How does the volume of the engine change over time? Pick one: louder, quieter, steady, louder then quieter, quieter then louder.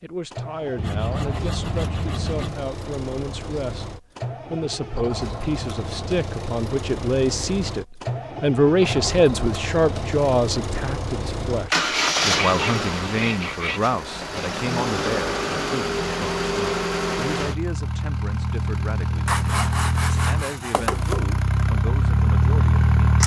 louder.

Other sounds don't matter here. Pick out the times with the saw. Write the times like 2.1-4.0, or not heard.
0.8-2.6, 11.8-13.9, 19.2-21.2.